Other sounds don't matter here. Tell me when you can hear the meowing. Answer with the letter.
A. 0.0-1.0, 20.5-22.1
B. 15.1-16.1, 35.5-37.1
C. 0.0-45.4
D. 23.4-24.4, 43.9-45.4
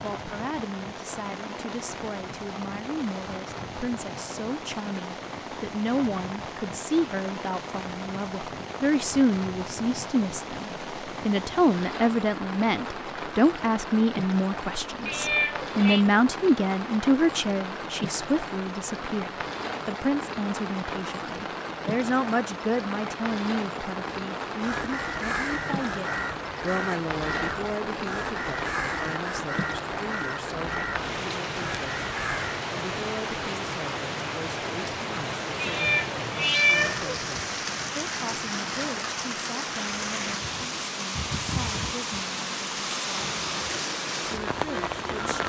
B.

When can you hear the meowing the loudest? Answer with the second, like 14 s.
37 s.